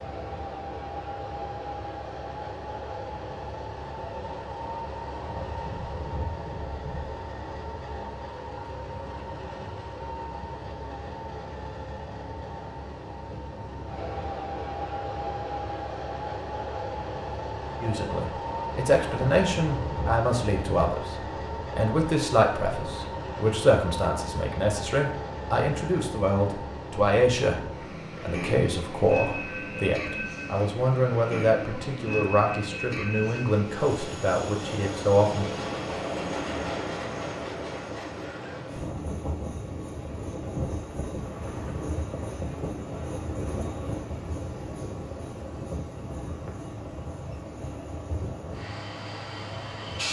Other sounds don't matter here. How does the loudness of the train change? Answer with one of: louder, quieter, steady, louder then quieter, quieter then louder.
steady.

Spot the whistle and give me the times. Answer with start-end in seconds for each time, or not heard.
not heard.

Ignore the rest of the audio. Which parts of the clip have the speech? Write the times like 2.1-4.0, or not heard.
17.8-35.5.